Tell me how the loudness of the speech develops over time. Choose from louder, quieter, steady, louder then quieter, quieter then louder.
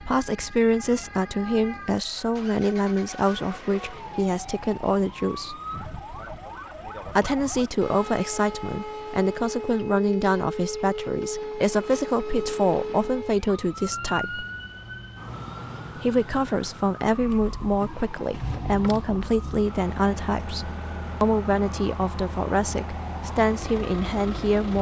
steady.